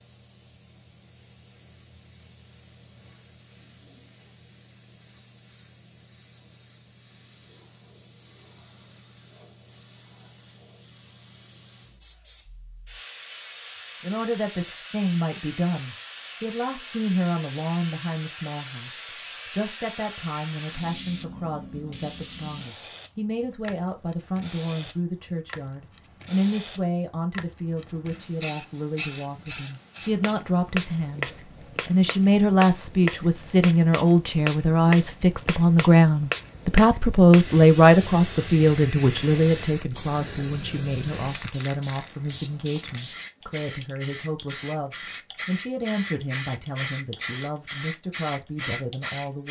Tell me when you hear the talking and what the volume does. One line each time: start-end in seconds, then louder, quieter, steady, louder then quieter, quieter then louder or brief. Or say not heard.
14.0-49.4 louder then quieter.